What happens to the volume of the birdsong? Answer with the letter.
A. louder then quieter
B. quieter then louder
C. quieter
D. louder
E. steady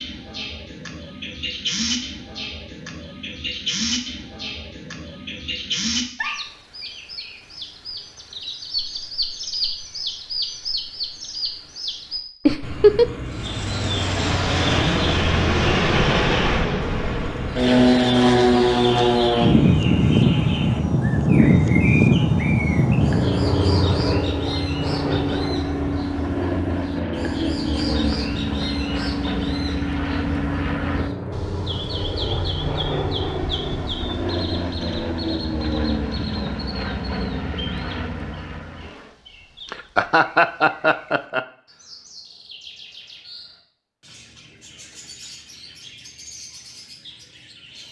C.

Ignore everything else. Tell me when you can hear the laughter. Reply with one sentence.
The laughter can be heard from 12.4 to 13.1 s, from 24.9 to 25.6 s and from 39.6 to 41.5 s.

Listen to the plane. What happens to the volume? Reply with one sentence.
The loudness of the plane goes down.